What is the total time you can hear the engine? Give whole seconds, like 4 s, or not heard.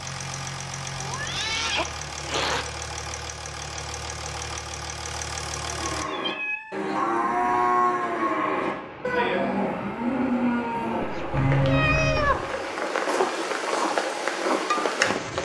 6 s.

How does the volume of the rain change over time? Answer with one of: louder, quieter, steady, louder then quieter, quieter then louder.
louder.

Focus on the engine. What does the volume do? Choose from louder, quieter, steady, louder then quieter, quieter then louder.
steady.